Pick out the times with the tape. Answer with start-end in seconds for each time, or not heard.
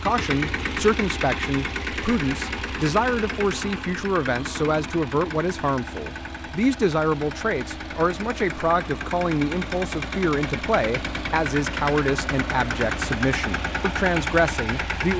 not heard.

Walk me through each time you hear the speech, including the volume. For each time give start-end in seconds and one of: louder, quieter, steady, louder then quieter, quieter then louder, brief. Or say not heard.
0.0-15.1 steady.